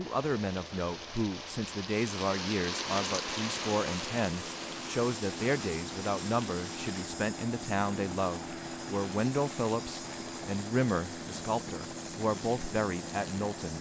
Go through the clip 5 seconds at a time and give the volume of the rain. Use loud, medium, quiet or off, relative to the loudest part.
loud, medium, off.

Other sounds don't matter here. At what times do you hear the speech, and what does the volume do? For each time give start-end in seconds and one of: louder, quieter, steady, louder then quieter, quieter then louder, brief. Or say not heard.
0.0-13.7 steady.